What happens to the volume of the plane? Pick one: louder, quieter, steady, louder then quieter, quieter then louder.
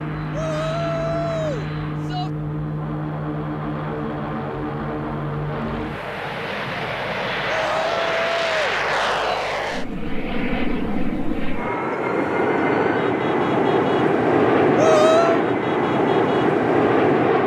louder.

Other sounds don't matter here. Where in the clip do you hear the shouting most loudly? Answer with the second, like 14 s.
15 s.